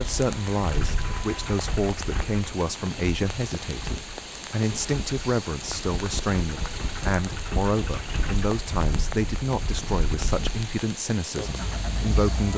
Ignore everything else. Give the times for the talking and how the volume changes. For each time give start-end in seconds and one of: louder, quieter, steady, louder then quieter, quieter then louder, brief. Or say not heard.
0.1-12.5 steady.